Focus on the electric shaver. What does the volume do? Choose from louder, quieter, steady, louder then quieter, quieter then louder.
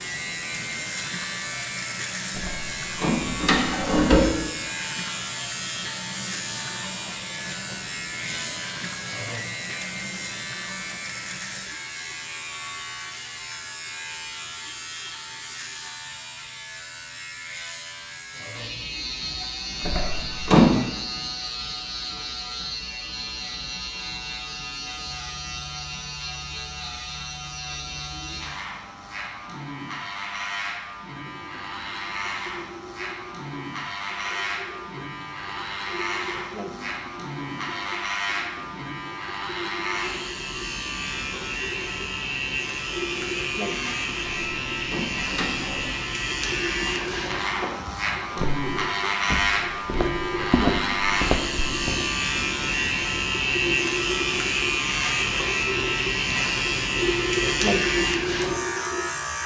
louder.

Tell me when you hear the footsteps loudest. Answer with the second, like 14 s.
51 s.